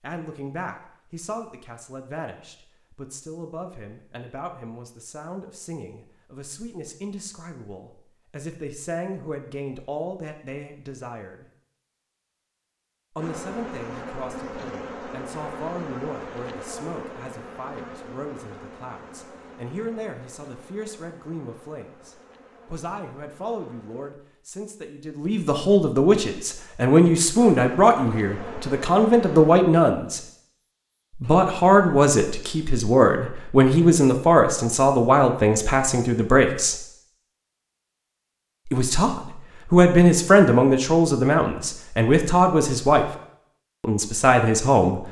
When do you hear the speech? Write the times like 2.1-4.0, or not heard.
0.0-11.4, 13.2-30.2, 31.1-36.9, 38.6-43.0, 43.8-45.0.